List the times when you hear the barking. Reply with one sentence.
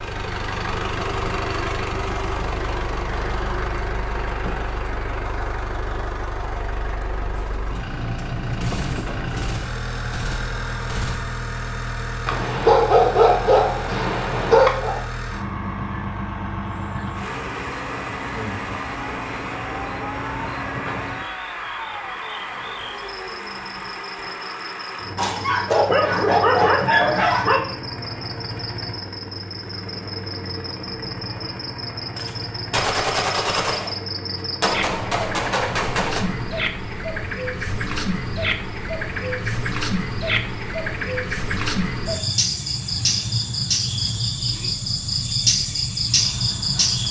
The barking can be heard from 12.2 to 15.0 s and from 25.1 to 27.6 s.